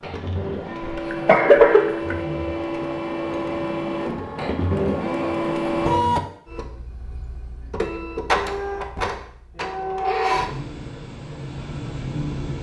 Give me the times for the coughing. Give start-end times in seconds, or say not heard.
0.8-2.1.